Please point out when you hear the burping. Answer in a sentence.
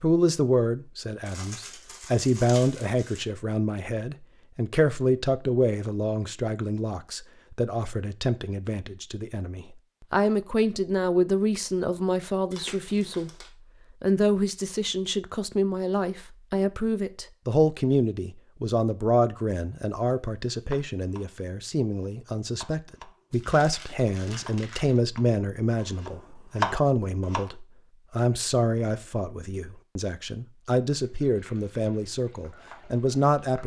The burping can't be heard in this clip.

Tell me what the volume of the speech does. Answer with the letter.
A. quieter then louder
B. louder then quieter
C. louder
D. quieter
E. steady
E.